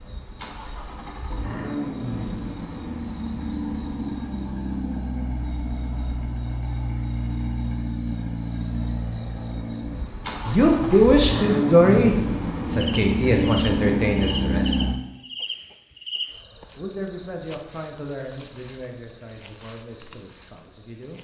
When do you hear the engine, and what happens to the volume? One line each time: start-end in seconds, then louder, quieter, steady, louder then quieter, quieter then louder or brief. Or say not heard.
0.0-14.9 louder.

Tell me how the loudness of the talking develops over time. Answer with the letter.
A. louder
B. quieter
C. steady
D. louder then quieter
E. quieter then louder
B.